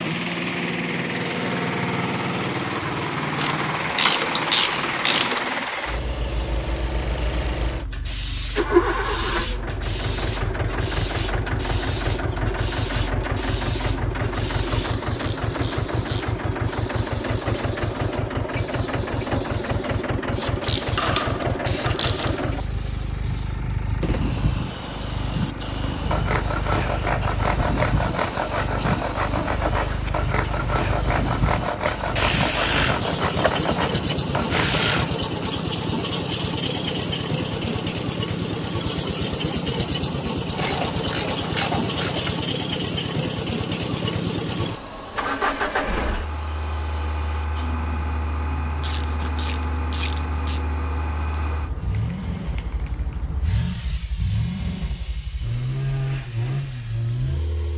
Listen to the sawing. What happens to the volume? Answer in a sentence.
The volume of the sawing stays about the same.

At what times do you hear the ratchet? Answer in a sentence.
You can hear the ratchet from 3.4 to 5.5 s, from 14.8 to 16.3 s, from 20.4 to 22.4 s, from 32.1 to 35.1 s, from 40.5 to 42.4 s and from 48.8 to 50.6 s.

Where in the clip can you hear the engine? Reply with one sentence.
You can hear the engine from 0.0 to 57.7 s.